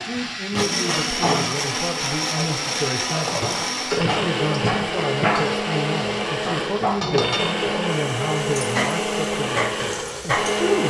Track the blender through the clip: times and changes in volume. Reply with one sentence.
The blender can be heard from 0.0 to 10.8 s, at a steady volume.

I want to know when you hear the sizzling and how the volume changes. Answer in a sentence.
The sizzling can be heard from 0.0 to 10.8 s, at a steady volume.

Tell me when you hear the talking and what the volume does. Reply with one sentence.
The talking can be heard from 0.0 to 10.8 s, at a steady volume.